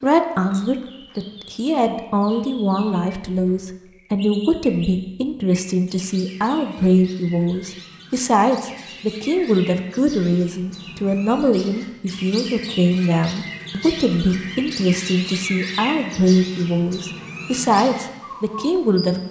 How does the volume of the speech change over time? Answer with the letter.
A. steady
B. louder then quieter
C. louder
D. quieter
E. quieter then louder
A.